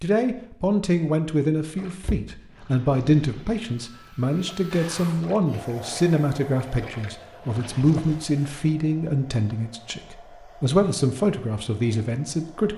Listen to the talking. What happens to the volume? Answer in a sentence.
The loudness of the talking stays about the same.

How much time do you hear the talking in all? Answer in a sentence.
You can hear the talking for 13 seconds altogether.